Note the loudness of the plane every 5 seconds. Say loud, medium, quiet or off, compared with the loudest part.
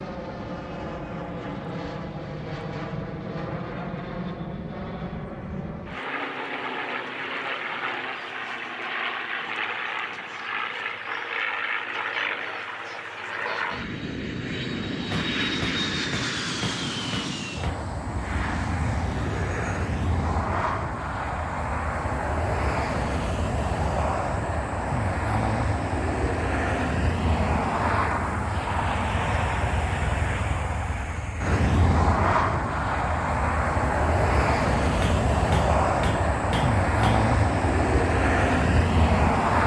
medium, medium, medium, medium, medium, loud, loud, loud.